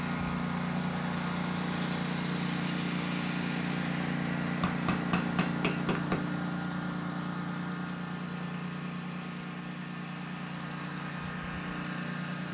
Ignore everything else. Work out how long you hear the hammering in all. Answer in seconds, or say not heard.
2 s.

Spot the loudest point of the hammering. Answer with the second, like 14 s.
6 s.